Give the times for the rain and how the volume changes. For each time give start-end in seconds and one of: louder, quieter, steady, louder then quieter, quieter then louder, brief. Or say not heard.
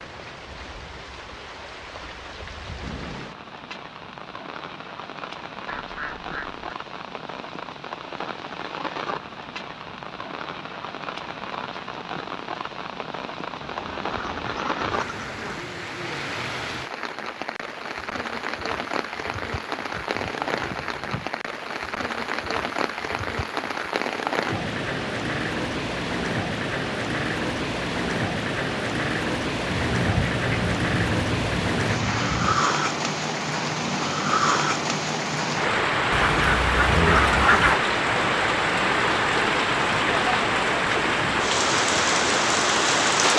0.0-43.3 louder.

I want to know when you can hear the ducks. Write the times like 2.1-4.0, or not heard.
5.7-6.5, 13.6-15.7, 19.9-21.4, 29.7-32.6, 36.1-37.8.